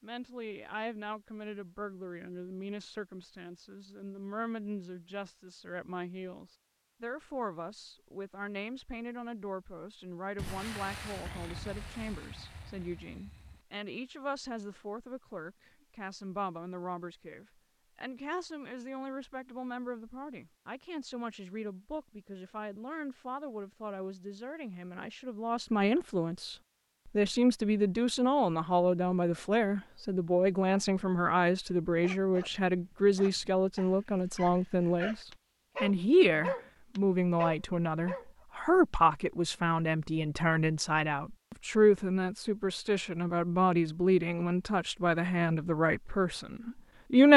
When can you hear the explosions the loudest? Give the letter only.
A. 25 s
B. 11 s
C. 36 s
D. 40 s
B.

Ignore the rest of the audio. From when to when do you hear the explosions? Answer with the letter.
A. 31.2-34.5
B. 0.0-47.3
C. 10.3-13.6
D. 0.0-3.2
C.